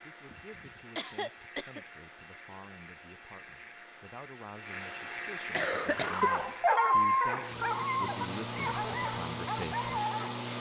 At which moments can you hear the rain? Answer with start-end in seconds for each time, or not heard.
not heard.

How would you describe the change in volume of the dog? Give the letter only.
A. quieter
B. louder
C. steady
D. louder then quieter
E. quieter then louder
A.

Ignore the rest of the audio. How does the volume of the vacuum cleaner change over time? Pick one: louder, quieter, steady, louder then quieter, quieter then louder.
louder.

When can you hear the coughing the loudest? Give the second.
6 s.